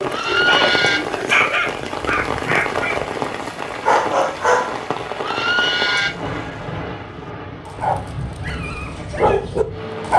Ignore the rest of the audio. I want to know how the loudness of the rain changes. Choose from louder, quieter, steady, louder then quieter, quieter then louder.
quieter.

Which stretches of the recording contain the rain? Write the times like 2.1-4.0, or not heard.
0.0-10.1.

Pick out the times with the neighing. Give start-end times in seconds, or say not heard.
0.1-1.0, 5.2-6.1.